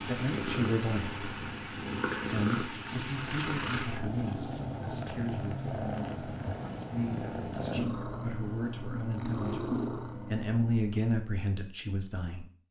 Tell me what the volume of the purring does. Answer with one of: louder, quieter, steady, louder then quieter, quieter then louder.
steady.